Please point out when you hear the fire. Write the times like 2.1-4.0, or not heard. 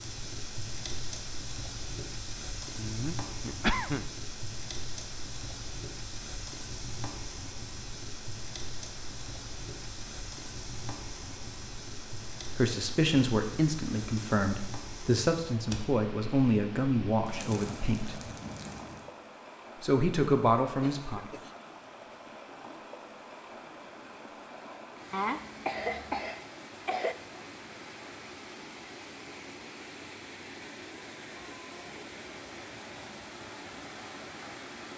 0.0-19.1.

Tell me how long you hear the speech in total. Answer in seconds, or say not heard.
7 s.